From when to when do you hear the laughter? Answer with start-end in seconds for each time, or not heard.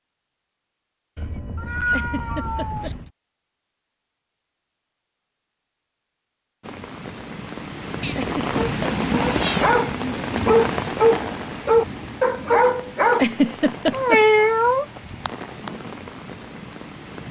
1.9-3.0, 8.2-8.8, 13.1-14.2.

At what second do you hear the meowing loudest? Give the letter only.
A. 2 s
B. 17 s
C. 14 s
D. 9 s
C.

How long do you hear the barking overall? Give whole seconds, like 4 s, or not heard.
5 s.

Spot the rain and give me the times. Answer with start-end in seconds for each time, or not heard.
6.6-17.2.